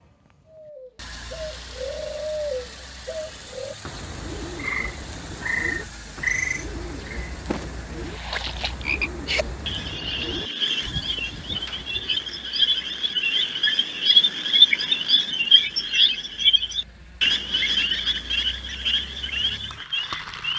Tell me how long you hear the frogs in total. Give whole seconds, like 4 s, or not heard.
16 s.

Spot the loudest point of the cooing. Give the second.
2 s.